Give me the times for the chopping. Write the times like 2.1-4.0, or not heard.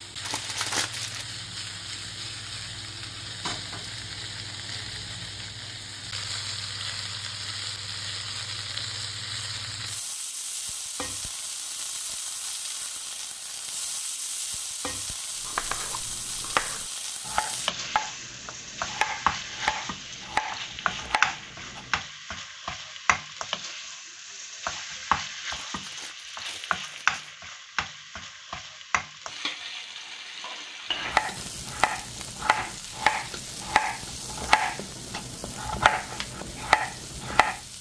15.4-21.9, 31.0-37.6.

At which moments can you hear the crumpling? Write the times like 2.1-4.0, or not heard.
0.2-1.2, 25.6-27.4.